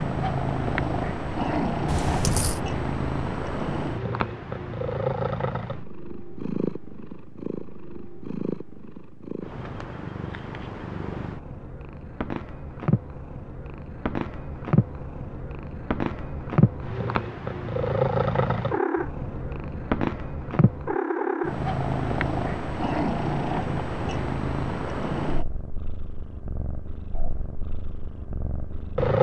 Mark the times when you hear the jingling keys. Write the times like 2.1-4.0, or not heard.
1.9-2.6.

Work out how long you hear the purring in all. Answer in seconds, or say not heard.
29 s.